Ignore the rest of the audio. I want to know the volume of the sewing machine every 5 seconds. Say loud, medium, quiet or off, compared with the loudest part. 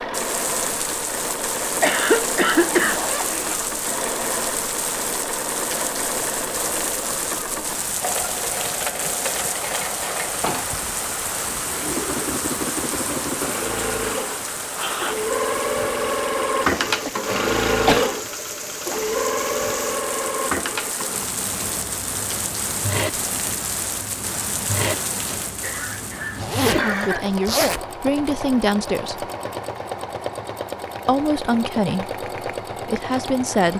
medium, medium, medium, loud, medium, medium, medium.